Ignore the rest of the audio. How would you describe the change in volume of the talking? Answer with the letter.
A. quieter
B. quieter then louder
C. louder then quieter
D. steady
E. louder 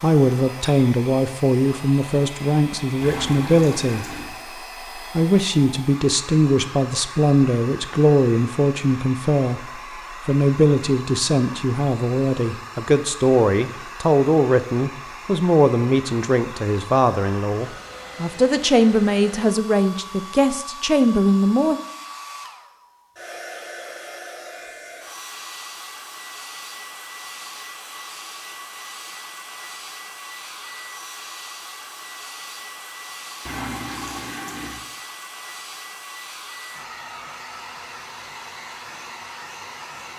D.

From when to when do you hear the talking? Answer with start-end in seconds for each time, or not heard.
0.0-4.0, 5.2-9.6, 10.2-21.8.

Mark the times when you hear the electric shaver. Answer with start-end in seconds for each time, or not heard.
not heard.